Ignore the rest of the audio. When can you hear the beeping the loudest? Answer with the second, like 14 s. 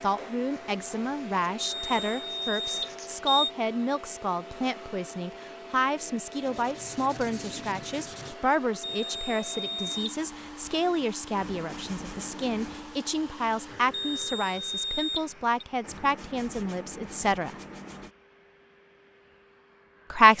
3 s.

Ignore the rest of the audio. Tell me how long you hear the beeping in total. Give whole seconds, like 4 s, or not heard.
5 s.